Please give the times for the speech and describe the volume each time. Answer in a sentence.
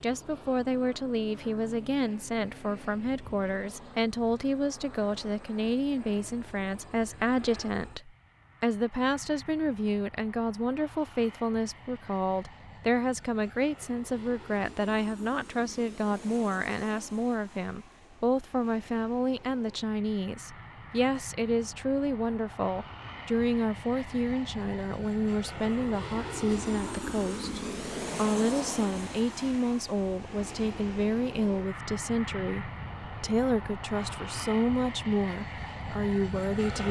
You can hear the speech from 0.0 to 36.8 s, at a steady volume.